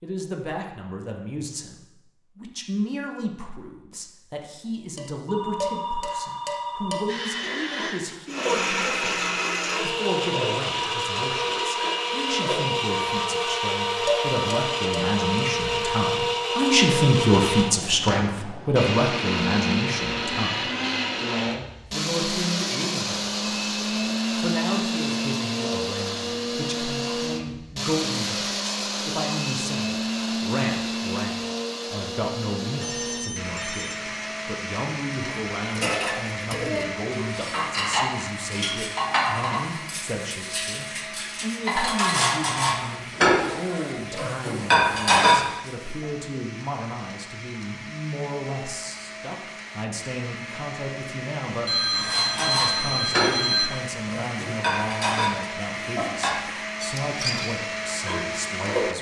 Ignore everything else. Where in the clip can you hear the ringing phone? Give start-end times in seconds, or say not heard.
5.2-7.3, 32.8-34.0, 51.6-53.7.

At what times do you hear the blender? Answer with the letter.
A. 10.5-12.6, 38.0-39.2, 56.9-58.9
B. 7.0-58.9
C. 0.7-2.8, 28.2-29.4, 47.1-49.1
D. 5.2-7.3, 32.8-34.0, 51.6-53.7
B.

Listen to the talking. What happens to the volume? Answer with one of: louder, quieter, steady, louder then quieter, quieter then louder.
louder then quieter.